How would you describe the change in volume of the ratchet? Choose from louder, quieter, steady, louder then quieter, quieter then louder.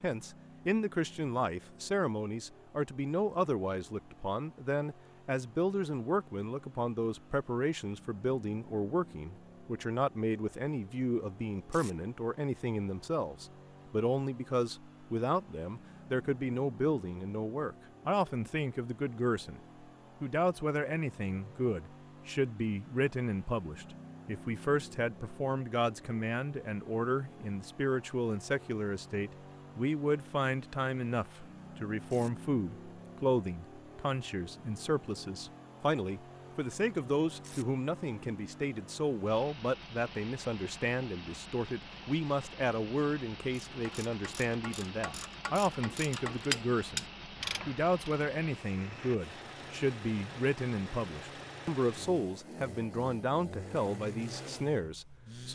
louder.